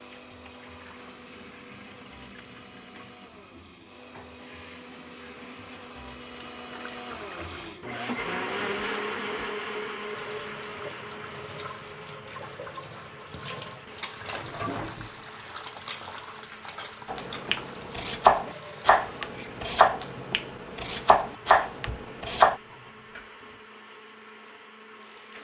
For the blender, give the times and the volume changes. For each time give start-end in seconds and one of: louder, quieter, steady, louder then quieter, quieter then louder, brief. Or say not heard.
0.0-25.3 louder then quieter.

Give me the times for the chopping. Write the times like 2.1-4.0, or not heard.
17.1-22.6.